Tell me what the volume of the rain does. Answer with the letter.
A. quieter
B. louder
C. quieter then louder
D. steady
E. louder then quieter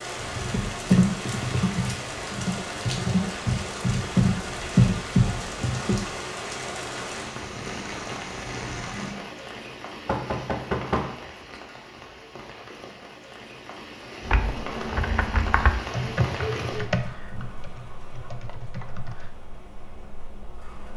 A.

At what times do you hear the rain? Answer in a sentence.
The rain can be heard from 0.0 to 20.9 s.